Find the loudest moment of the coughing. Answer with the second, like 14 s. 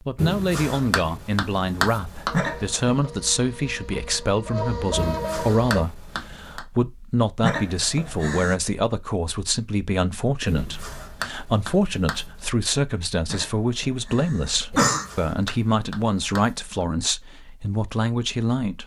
15 s.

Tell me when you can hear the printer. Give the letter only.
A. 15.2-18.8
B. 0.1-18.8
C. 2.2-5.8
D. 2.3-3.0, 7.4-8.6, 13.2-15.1
C.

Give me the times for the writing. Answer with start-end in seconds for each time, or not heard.
0.1-2.3, 5.0-6.6, 10.4-12.4, 14.7-16.9.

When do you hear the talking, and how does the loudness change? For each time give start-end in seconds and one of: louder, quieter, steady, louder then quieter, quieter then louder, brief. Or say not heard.
0.1-18.8 steady.